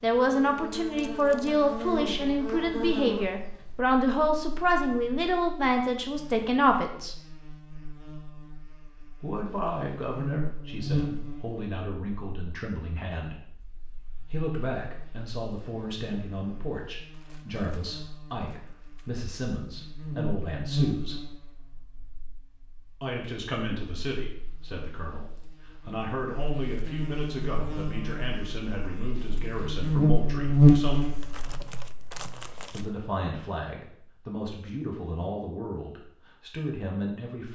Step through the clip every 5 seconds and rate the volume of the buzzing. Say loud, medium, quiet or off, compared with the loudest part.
quiet, quiet, quiet, quiet, quiet, quiet, loud, off.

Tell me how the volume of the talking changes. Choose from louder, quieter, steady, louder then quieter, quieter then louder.
quieter.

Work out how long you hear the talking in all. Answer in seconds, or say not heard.
31 s.